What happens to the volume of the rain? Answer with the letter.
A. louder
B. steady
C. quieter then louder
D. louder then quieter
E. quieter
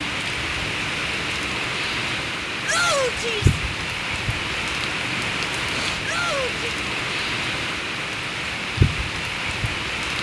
B.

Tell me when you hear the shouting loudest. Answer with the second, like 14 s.
3 s.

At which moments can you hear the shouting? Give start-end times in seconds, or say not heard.
2.6-3.6, 6.0-6.5.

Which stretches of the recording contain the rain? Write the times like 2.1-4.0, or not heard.
0.0-10.1.